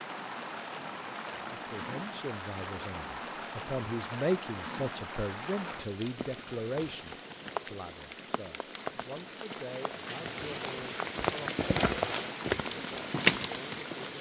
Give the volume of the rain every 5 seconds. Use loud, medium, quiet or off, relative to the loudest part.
medium, medium, loud.